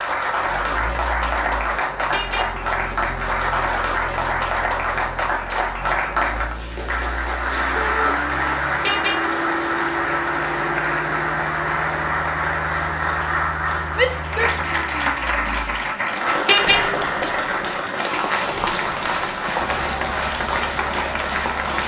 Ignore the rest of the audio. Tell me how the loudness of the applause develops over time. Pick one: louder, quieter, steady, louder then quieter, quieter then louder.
steady.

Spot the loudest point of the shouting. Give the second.
14 s.